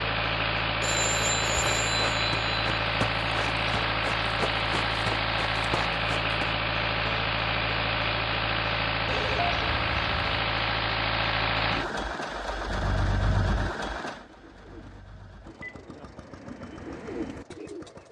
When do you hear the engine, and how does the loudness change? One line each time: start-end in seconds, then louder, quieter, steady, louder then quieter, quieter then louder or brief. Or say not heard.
0.0-18.0 quieter.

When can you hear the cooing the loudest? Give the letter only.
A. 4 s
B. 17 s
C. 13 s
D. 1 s
B.